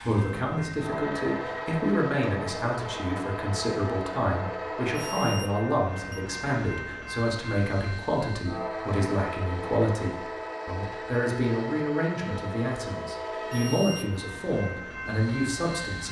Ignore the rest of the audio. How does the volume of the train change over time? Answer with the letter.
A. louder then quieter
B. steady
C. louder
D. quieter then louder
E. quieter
B.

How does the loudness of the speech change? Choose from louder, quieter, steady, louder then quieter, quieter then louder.
steady.